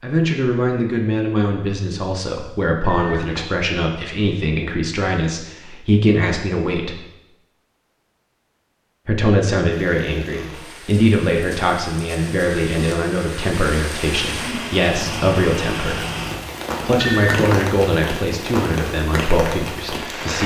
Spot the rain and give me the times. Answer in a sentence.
You can hear the rain from 9.7 to 20.4 s.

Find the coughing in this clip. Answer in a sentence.
The coughing can't be heard in this clip.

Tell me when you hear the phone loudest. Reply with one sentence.
The loudest moment of the phone is at 17 seconds.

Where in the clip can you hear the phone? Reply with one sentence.
The phone can be heard from 2.8 to 3.5 s and from 17.0 to 17.8 s.